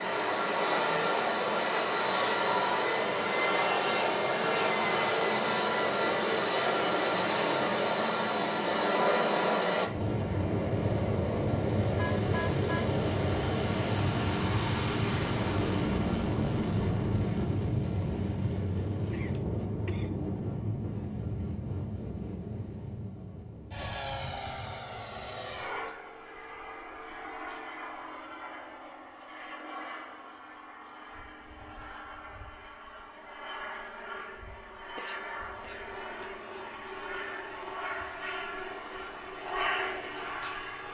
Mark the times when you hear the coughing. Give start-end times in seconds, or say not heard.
1.9-2.3, 19.1-20.2, 35.0-36.6.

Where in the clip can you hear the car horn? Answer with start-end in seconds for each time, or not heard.
11.9-12.9.